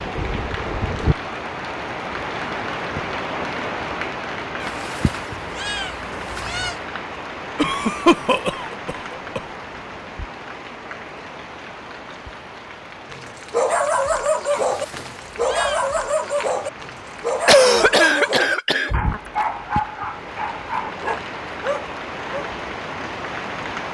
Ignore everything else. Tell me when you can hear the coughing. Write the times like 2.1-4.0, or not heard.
7.5-9.4, 17.4-18.9.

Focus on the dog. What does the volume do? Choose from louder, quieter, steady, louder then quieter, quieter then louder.
quieter.